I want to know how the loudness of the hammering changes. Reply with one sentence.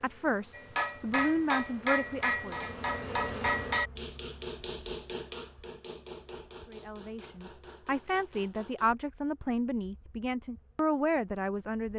The volume of the hammering goes down.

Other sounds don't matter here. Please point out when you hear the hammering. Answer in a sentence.
The hammering can be heard from 0.5 to 8.9 s.